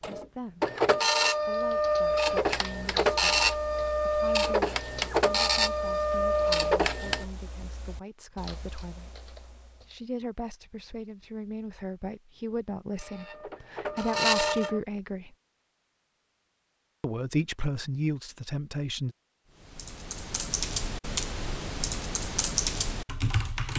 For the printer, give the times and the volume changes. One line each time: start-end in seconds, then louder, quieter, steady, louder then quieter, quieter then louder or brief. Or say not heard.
0.0-7.2 steady
12.9-14.8 brief.